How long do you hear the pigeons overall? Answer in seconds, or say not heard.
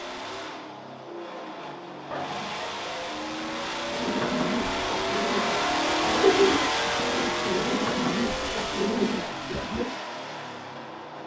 6 s.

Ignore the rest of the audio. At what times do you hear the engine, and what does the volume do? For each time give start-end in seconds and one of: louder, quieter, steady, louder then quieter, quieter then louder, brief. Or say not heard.
0.0-11.2 louder then quieter.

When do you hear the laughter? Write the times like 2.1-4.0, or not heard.
2.1-3.0, 6.2-6.8.